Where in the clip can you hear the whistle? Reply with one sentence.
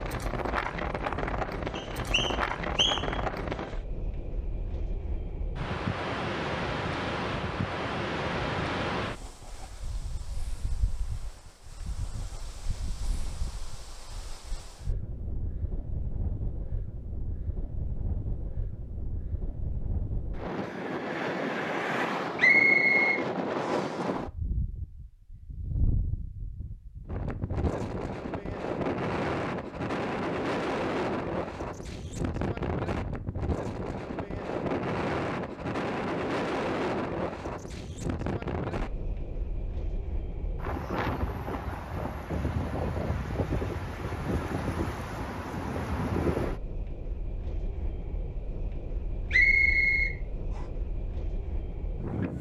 The whistle can be heard from 1.8 to 3.2 s, from 22.4 to 24.0 s and from 49.3 to 50.6 s.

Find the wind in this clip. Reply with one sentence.
You can hear the wind from 0.0 to 52.3 s.